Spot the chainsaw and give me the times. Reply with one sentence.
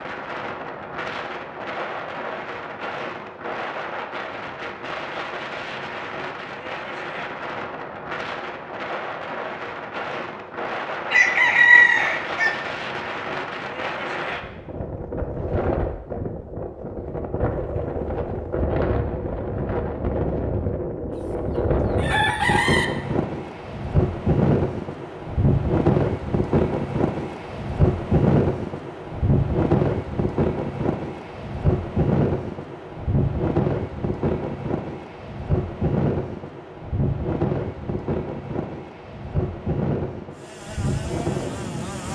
The chainsaw can be heard from 40.3 to 42.1 s.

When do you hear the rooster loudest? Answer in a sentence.
The volume of the rooster peaks at 12 seconds.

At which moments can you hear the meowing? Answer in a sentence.
The meowing can't be heard in this clip.